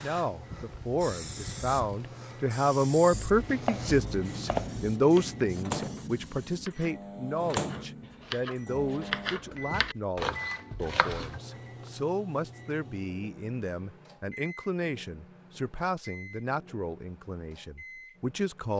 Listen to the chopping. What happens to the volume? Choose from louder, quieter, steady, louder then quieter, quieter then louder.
quieter then louder.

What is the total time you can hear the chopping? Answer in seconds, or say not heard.
8 s.